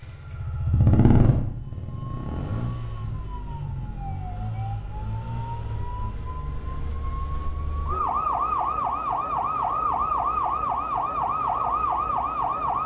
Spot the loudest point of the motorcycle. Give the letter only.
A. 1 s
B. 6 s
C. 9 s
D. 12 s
A.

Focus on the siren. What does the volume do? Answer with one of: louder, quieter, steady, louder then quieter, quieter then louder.
louder.